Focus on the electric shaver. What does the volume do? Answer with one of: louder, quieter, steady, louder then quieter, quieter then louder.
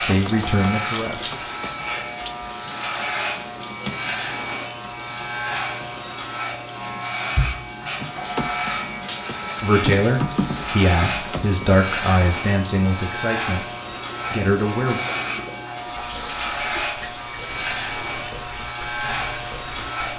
steady.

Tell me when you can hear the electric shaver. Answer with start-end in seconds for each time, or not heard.
0.0-20.1.